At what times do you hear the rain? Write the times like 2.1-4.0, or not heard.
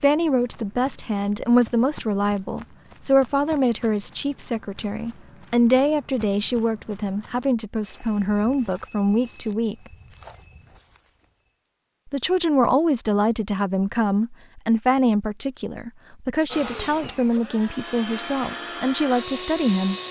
not heard.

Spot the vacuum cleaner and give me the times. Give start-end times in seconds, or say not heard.
16.4-20.0.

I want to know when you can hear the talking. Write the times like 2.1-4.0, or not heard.
0.0-9.9, 12.1-20.0.